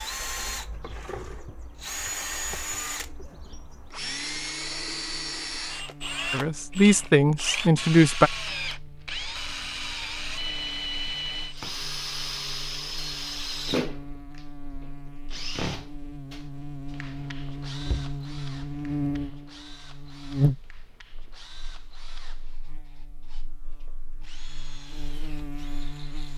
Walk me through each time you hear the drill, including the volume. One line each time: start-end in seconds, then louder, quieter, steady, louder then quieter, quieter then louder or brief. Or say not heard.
0.0-26.3 quieter.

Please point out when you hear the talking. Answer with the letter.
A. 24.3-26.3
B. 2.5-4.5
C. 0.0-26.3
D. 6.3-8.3
D.